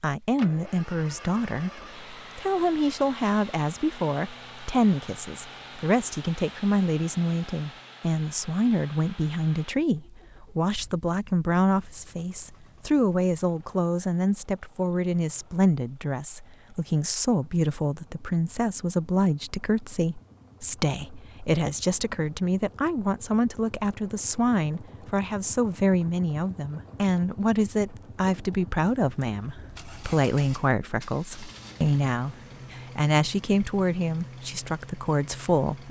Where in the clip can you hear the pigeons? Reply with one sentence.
You can't hear the pigeons here.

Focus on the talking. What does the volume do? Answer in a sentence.
The volume of the talking stays about the same.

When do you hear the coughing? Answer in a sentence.
You can't hear the coughing here.